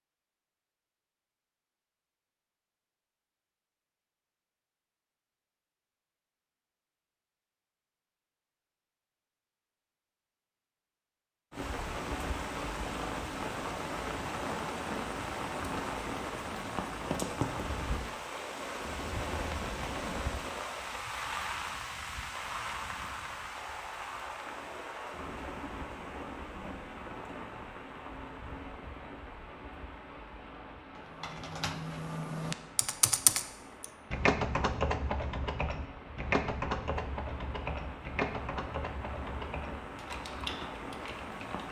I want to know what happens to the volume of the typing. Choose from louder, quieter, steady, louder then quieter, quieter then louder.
quieter.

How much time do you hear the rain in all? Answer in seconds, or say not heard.
30 s.